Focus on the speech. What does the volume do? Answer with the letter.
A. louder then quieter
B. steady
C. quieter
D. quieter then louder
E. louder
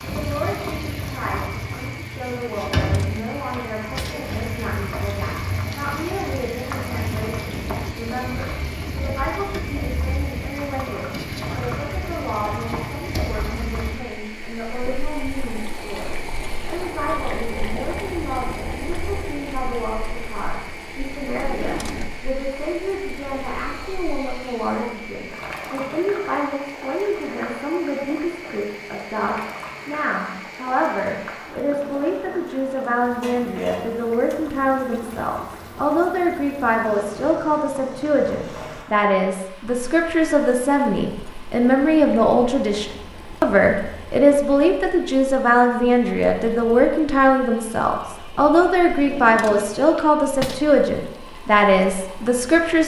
E.